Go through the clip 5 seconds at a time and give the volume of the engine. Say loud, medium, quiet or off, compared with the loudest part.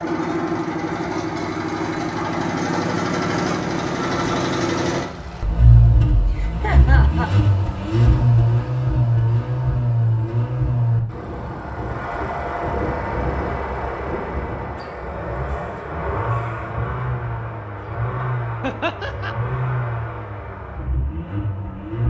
loud, loud, medium, medium, medium.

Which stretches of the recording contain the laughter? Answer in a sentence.
The laughter can be heard from 6.3 to 7.3 s and from 18.6 to 19.4 s.